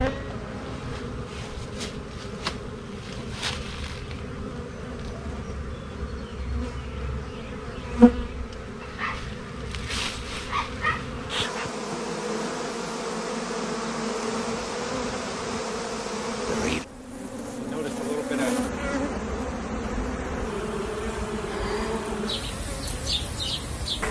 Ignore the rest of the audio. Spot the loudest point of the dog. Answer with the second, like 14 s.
11 s.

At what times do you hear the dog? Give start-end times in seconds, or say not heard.
8.8-11.1.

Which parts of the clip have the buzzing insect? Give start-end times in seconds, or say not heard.
0.0-24.0.